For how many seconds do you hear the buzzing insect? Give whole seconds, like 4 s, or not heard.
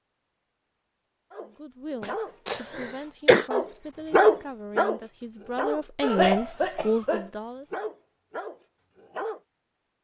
not heard.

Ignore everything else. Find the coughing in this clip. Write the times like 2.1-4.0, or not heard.
2.0-3.5, 6.0-7.3.